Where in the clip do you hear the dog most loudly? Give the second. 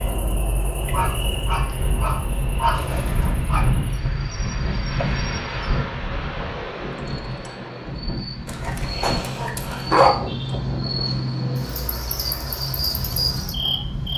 10 s.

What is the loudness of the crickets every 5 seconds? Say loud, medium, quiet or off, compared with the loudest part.
medium, medium, loud.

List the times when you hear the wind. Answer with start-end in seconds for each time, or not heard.
0.0-14.1.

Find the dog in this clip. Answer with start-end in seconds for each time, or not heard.
0.8-3.6, 8.4-10.2.